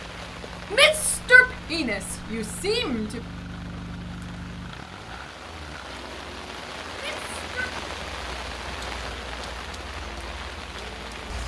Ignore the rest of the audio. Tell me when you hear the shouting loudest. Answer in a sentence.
The volume of the shouting peaks at 1 second.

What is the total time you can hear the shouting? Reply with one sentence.
The shouting can be heard for 3 seconds in total.